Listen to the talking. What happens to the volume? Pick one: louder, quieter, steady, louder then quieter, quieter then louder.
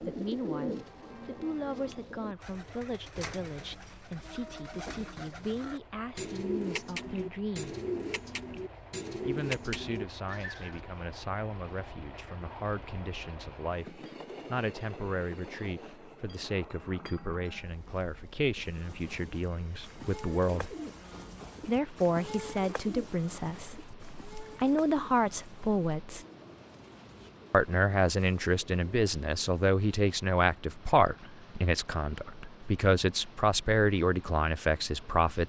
louder.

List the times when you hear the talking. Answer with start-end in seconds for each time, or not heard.
0.0-7.8, 9.2-20.8, 21.6-26.2, 27.5-35.4.